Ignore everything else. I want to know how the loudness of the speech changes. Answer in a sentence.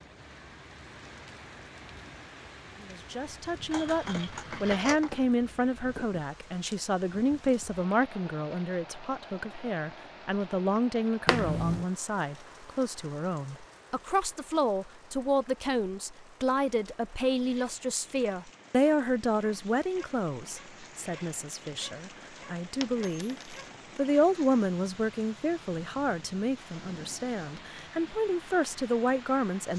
The loudness of the speech stays about the same.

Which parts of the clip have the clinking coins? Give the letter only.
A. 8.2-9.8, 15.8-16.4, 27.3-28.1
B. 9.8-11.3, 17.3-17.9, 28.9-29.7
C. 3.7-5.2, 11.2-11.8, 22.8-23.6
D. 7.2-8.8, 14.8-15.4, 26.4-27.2
C.